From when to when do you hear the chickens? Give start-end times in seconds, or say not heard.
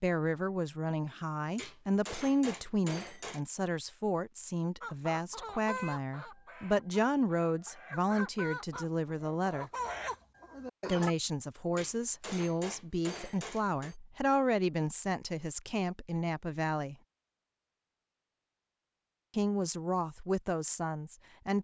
4.8-11.2.